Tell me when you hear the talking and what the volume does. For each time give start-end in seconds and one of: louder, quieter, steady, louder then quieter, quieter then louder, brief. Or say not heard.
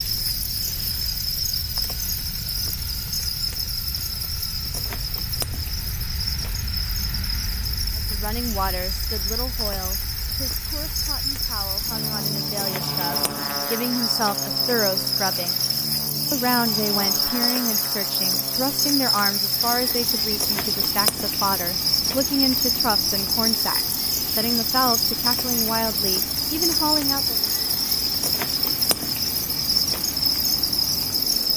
8.0-15.6 quieter then louder
16.3-27.4 steady.